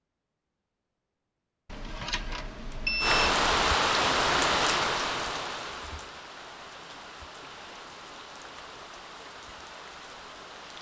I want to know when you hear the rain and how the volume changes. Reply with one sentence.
The rain can be heard from 3.0 to 10.7 s, getting quieter.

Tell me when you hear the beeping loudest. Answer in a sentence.
The volume of the beeping peaks at 3 seconds.